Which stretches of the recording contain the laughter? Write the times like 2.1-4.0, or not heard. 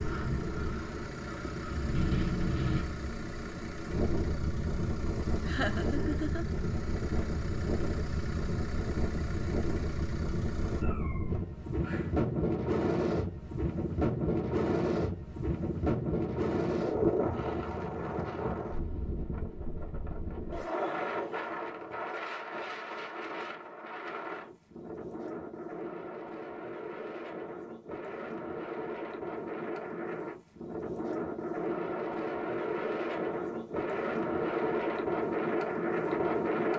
5.5-6.5, 20.5-21.9.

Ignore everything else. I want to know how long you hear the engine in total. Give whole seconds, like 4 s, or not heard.
11 s.